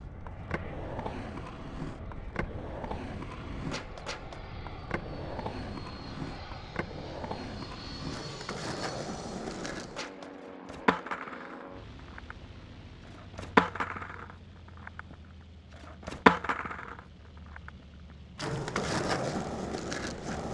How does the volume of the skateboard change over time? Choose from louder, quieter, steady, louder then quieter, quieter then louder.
louder.